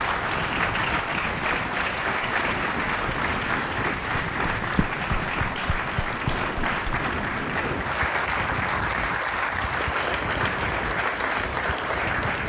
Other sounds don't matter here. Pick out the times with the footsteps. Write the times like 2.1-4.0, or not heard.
not heard.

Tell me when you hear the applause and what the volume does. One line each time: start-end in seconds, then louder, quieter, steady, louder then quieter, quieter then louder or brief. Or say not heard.
0.0-12.4 steady.